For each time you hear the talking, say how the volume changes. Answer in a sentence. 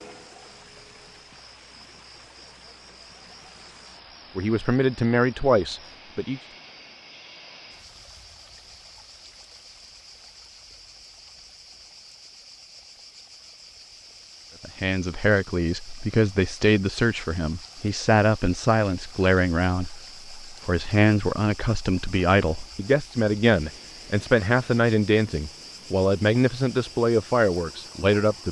You can hear the talking briefly from 4.3 to 6.4 s; and from 14.6 to 28.4 s, at a steady volume.